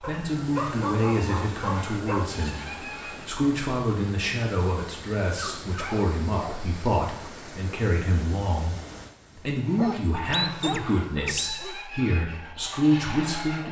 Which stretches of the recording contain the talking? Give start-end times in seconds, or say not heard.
0.0-8.8, 9.3-13.6.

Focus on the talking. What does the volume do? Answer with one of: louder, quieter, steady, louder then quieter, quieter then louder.
steady.